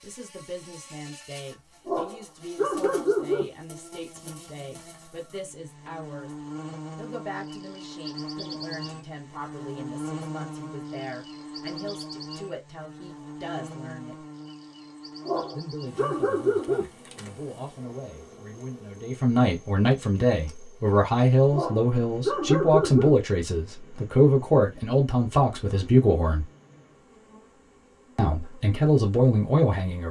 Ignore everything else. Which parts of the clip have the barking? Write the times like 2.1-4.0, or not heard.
1.9-3.5, 15.2-16.9, 21.5-23.1.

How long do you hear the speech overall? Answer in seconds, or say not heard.
26 s.